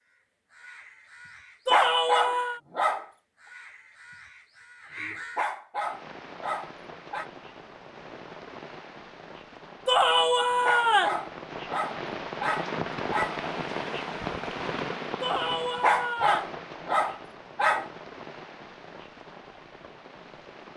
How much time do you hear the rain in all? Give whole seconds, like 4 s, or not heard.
15 s.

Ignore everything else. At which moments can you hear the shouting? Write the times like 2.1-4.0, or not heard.
1.6-2.6, 9.8-11.2, 15.2-16.6.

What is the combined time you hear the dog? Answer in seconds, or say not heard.
8 s.